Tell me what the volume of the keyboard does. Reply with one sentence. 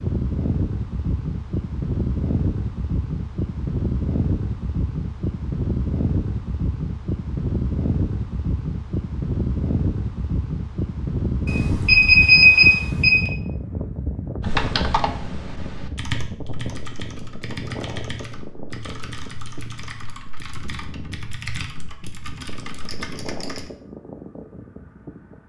The volume of the keyboard goes down.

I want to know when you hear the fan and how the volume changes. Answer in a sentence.
You can hear the fan from 0.0 to 25.4 s, getting quieter.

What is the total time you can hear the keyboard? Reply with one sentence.
The keyboard can be heard for 9 seconds in total.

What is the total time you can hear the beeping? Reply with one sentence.
The beeping can be heard for 2 seconds in total.